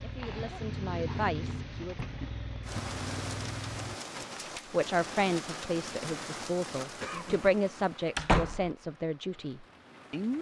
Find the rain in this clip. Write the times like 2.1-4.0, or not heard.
2.6-10.3.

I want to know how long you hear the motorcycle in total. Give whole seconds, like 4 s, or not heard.
4 s.